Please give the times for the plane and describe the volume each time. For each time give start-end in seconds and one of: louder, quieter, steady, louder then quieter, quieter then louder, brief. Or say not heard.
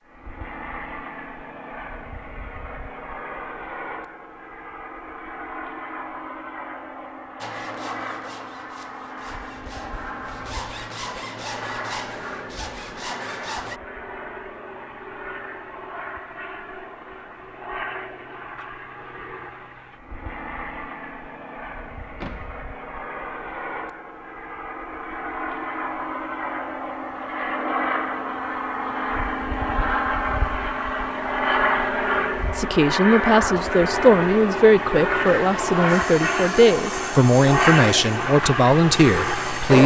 0.0-39.8 louder.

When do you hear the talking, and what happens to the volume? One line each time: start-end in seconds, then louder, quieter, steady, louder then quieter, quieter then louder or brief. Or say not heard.
32.5-39.8 steady.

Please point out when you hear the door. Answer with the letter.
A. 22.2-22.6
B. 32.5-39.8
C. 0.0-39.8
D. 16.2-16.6
A.